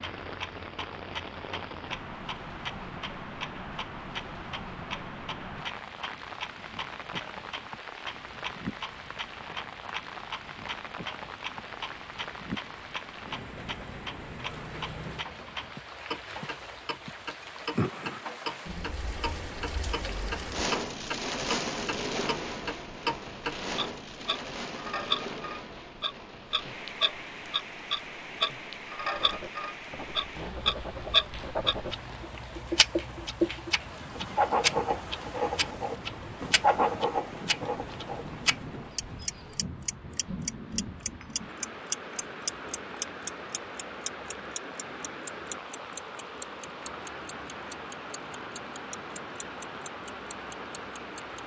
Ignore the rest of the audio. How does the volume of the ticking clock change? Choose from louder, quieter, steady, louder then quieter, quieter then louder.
louder then quieter.